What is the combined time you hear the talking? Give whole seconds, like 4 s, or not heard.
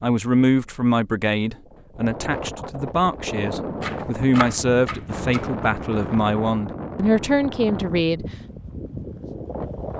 8 s.